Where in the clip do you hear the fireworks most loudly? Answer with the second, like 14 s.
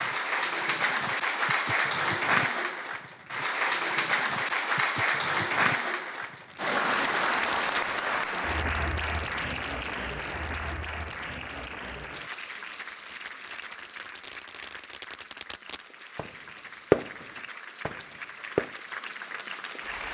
17 s.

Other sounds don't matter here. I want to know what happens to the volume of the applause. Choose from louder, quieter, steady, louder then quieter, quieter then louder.
quieter.